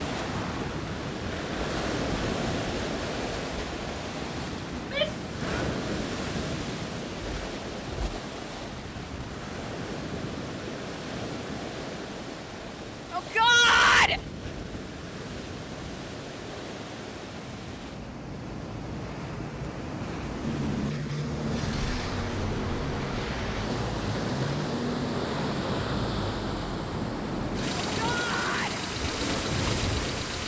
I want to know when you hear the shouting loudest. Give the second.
14 s.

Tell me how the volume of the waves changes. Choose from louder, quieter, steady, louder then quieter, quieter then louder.
quieter then louder.